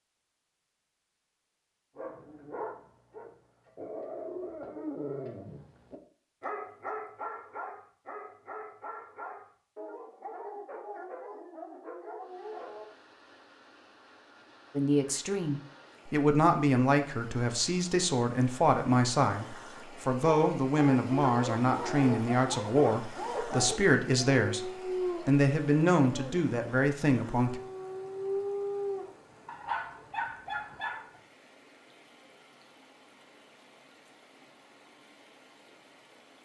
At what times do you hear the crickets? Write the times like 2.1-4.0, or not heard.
not heard.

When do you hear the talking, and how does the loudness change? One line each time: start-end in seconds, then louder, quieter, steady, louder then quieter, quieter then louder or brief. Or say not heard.
14.8-27.6 steady.